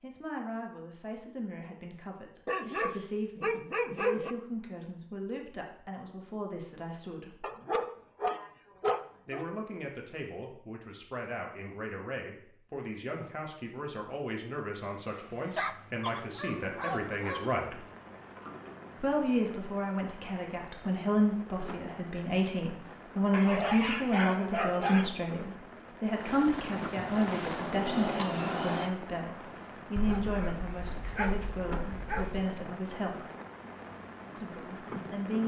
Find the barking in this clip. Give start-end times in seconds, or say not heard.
2.5-4.3, 7.4-9.4, 15.6-17.5, 23.3-25.1, 29.9-32.5.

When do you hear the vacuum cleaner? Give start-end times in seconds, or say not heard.
27.4-28.9.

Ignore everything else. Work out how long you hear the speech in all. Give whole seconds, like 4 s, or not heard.
31 s.